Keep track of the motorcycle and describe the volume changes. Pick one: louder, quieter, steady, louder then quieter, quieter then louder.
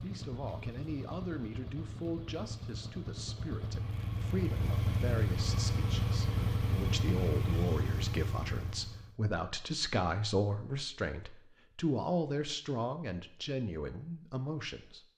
louder.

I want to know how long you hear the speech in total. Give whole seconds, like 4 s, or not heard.
15 s.